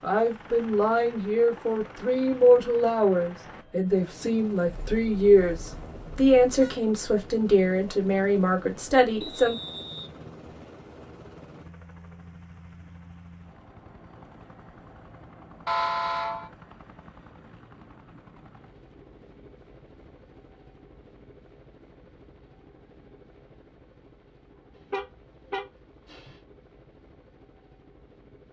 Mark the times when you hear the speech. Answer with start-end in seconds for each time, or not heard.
0.0-9.6.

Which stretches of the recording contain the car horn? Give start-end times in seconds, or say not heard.
4.7-6.8, 15.7-16.5, 24.9-26.4.